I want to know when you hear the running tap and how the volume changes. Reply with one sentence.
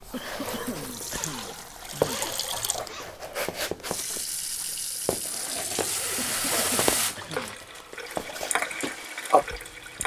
The running tap can be heard from 0.0 to 10.0 s, getting louder.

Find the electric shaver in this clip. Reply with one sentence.
You can't hear the electric shaver here.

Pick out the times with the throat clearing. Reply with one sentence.
The throat clearing can be heard from 0.1 to 2.2 s and from 6.2 to 7.5 s.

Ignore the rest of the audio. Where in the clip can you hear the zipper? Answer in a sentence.
You can hear the zipper from 1.1 to 3.1 s and from 5.5 to 7.5 s.